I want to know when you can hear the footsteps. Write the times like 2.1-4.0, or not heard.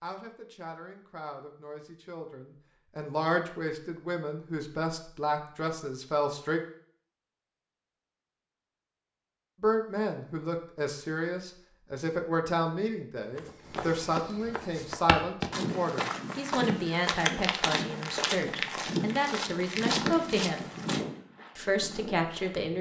13.3-22.6.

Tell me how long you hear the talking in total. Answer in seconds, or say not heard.
19 s.